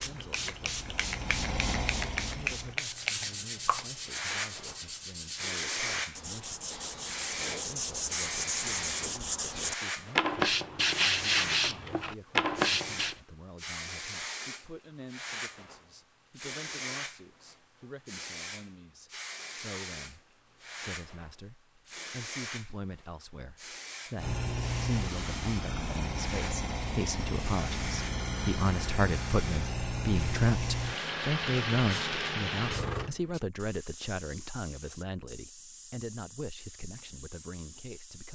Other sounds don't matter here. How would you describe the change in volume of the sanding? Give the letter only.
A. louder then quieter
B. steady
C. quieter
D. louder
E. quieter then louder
D.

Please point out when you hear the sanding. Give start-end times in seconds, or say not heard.
2.9-13.2.